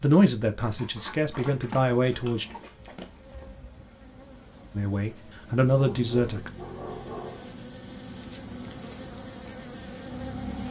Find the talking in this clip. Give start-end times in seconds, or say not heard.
0.0-2.5, 4.8-6.5.